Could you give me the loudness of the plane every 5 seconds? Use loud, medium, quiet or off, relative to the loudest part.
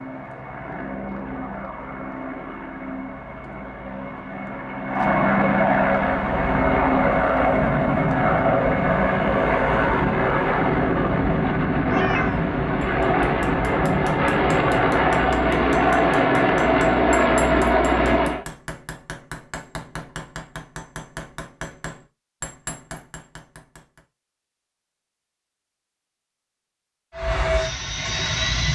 quiet, loud, loud, loud, off, medium.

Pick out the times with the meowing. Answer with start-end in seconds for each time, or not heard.
11.8-12.5.